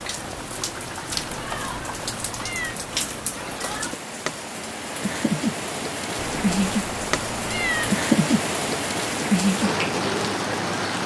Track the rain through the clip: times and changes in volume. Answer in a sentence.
You can hear the rain from 0.0 to 11.0 s, getting louder.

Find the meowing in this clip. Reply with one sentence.
You can hear the meowing from 1.1 to 2.8 s and from 6.2 to 7.9 s.